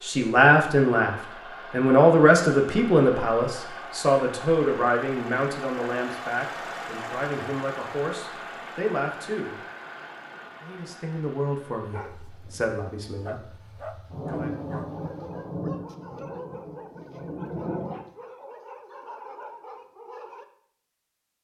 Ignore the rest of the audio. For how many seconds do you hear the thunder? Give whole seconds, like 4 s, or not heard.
4 s.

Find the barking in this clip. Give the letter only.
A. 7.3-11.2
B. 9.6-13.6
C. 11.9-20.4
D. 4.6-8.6
C.